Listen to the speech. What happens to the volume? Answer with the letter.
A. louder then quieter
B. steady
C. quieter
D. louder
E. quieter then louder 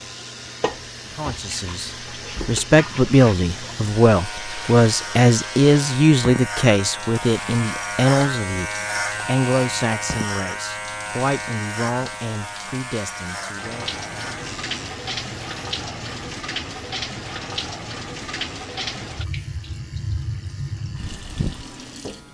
C.